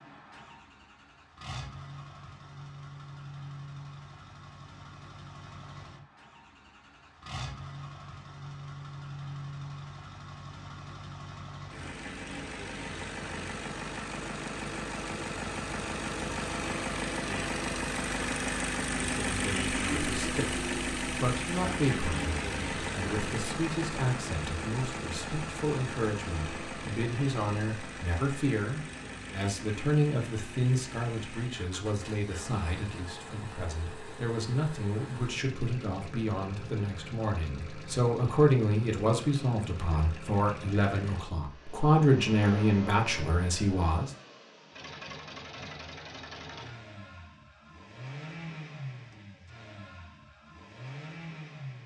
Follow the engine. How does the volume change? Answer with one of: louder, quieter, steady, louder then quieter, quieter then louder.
louder then quieter.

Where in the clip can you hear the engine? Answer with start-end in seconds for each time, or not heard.
0.0-51.8.